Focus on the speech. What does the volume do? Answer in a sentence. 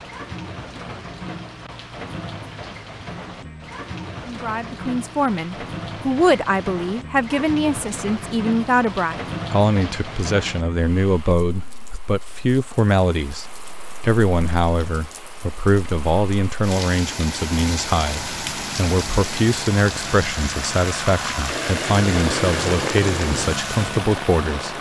The volume of the speech stays about the same.